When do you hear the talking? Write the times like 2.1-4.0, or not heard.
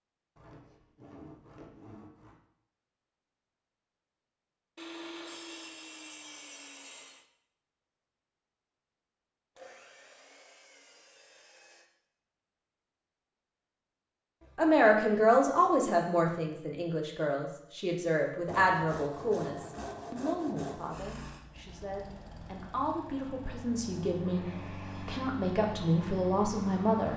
14.6-24.4, 25.1-27.1.